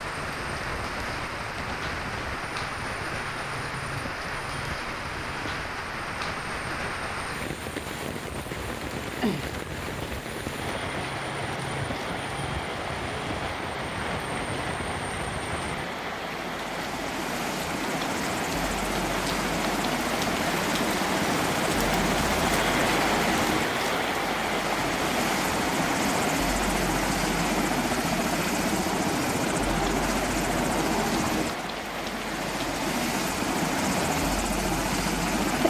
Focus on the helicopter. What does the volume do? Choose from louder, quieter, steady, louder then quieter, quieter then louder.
louder.